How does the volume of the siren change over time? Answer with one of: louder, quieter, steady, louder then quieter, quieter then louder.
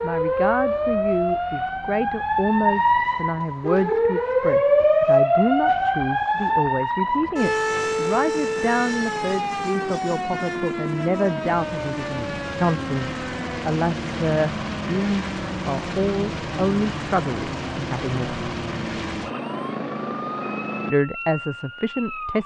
quieter.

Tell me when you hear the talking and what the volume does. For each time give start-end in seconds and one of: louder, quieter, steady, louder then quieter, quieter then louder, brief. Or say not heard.
0.0-18.4 steady
20.9-22.4 brief.